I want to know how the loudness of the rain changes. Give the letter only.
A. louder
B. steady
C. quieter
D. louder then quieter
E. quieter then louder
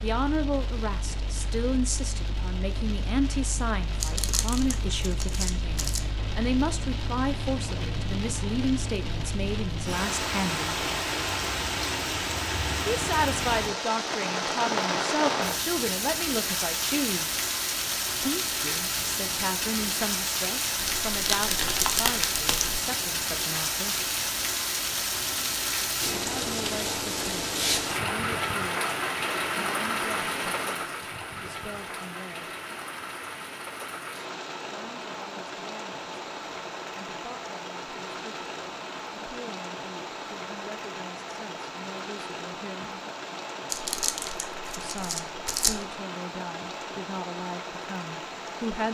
D.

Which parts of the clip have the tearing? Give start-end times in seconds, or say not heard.
4.0-6.0, 20.8-22.8, 43.6-46.0.